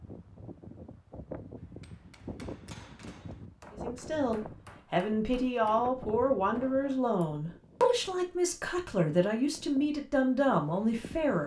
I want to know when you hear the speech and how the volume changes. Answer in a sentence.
The speech can be heard from 3.7 to 11.4 s, at a steady volume.